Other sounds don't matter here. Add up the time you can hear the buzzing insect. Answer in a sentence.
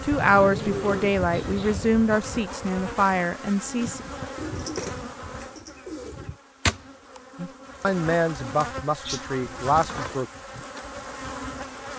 You can hear the buzzing insect for 12 seconds altogether.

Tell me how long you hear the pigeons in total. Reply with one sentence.
You can hear the pigeons for 4 seconds altogether.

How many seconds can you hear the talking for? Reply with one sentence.
You can hear the talking for 7 seconds altogether.